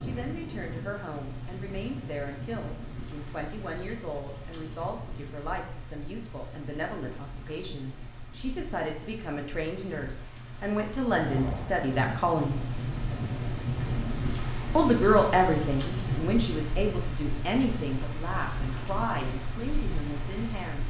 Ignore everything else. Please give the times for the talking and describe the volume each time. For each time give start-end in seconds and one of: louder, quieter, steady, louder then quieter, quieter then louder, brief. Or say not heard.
0.0-12.6 louder
14.8-20.8 quieter.